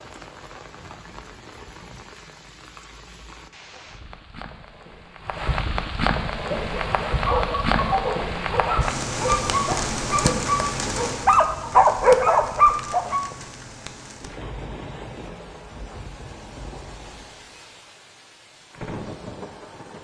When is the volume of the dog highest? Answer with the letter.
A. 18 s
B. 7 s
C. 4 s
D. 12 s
D.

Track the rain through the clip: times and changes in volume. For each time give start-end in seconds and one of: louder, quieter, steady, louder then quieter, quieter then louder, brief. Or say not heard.
0.0-20.0 louder then quieter.